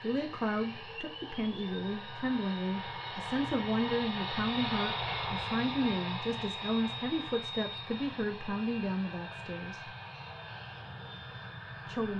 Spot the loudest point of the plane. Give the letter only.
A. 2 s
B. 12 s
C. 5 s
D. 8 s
C.